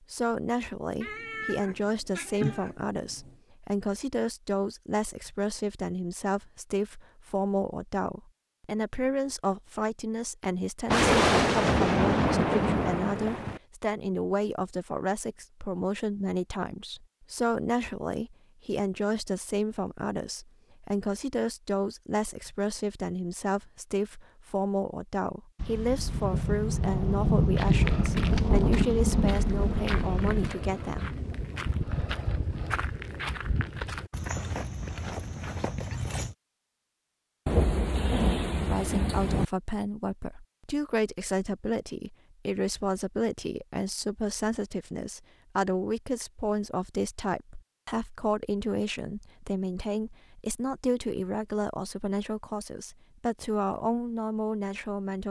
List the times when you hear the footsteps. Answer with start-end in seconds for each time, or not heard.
27.5-36.4.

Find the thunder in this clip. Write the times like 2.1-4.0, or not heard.
10.8-13.6, 25.6-30.5, 37.5-39.5.